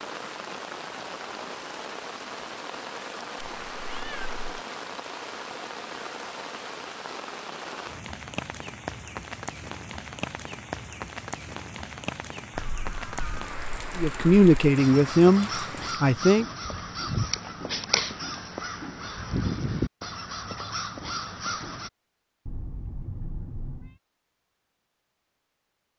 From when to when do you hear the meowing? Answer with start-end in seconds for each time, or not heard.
3.6-4.6, 22.4-24.0.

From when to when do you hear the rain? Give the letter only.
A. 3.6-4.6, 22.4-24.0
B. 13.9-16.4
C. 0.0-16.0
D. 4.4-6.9
C.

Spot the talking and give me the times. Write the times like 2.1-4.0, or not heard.
13.9-16.4.